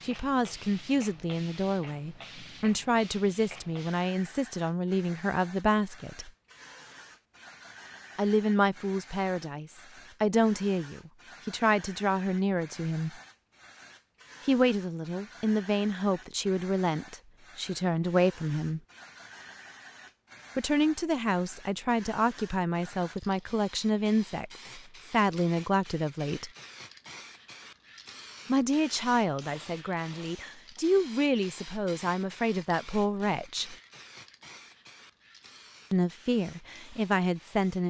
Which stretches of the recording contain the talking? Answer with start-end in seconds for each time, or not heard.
0.0-6.3, 8.2-13.2, 14.4-18.8, 20.6-26.5, 28.4-33.8, 35.9-37.8.